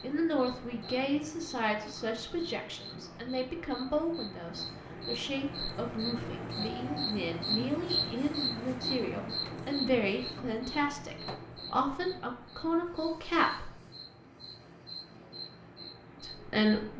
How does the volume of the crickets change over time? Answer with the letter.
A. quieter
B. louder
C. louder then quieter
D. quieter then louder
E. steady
C.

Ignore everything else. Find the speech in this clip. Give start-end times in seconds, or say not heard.
0.0-13.8, 16.2-16.9.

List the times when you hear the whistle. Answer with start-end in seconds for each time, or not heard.
not heard.